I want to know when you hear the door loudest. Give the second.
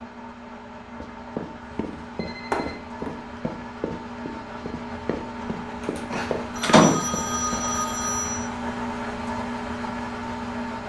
7 s.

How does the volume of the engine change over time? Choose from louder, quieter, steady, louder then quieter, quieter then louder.
louder.